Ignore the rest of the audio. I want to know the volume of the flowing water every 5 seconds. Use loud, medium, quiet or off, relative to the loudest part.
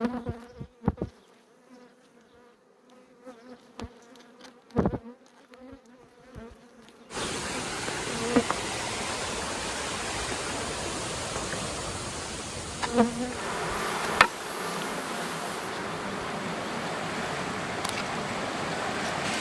off, loud, loud, loud.